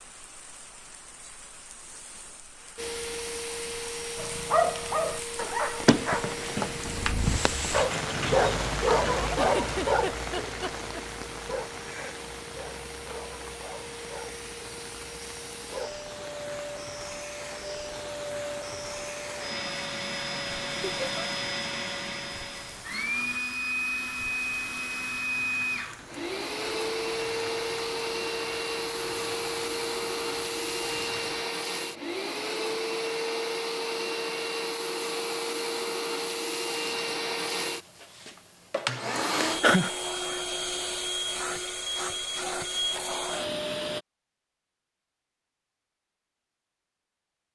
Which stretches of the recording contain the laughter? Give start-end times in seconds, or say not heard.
9.3-11.1, 20.8-21.2, 39.4-39.9.